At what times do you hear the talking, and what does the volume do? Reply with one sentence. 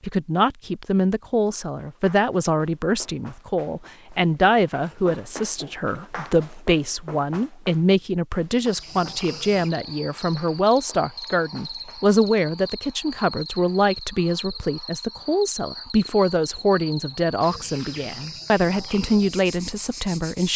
You can hear the talking from 0.0 to 20.5 s, at a steady volume.